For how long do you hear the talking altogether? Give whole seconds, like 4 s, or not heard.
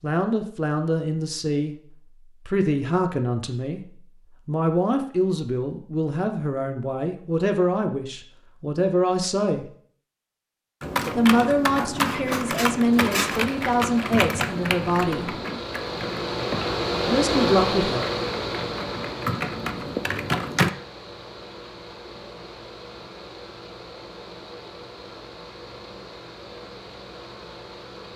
15 s.